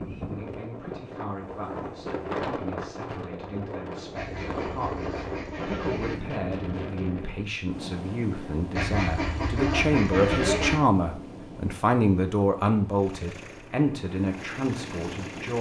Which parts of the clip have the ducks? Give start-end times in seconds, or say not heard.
4.2-6.2, 8.8-10.8.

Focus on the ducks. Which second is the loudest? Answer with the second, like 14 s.
10 s.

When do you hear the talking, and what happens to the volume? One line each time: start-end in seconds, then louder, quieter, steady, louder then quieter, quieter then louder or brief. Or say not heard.
0.0-15.5 louder.